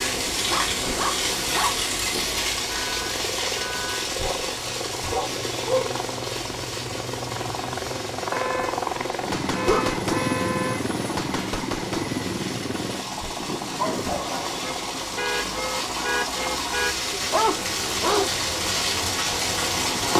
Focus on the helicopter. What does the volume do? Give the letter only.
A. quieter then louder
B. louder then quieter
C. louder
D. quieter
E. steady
B.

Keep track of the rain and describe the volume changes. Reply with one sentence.
The volume of the rain goes down, then up.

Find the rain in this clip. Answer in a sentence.
The rain can be heard from 0.0 to 20.1 s.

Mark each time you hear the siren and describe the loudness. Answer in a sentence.
The siren can't be heard in this clip.